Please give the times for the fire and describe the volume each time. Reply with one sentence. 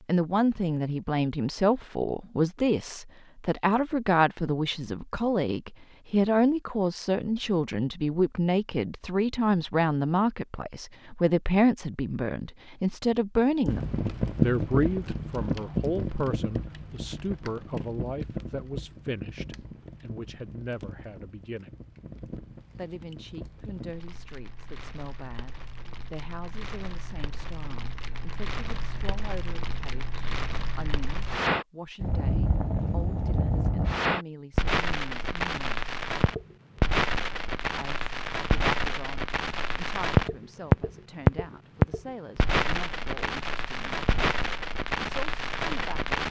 You can hear the fire from 13.7 to 46.2 s, getting quieter then louder.